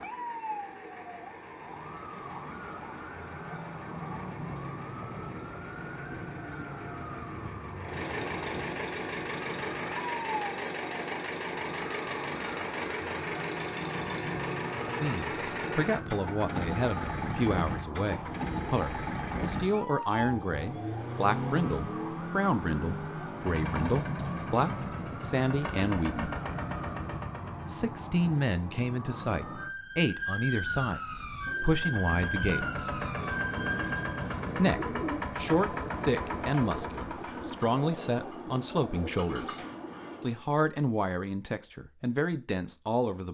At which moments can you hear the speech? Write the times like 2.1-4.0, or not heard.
14.9-26.3, 27.7-33.0, 34.5-39.5, 40.2-43.3.